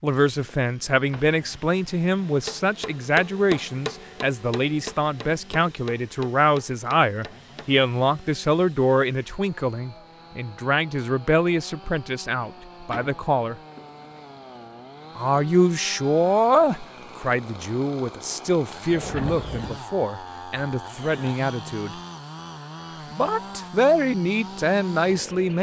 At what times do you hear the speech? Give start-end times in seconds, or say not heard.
0.0-13.6, 15.2-21.9, 23.1-25.5.